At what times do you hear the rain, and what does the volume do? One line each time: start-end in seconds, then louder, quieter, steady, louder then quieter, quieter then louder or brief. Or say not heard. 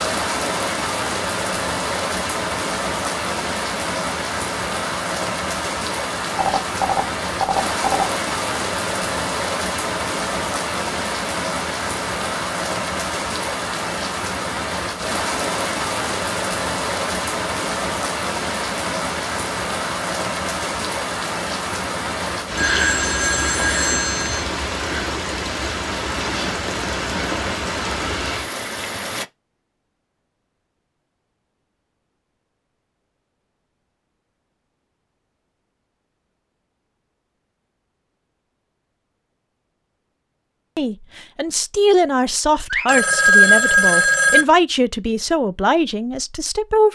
0.0-29.2 steady.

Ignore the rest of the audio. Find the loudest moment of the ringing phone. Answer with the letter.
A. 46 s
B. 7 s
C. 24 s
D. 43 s
D.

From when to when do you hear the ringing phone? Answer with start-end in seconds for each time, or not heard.
6.3-8.1, 22.6-24.4, 42.7-44.5.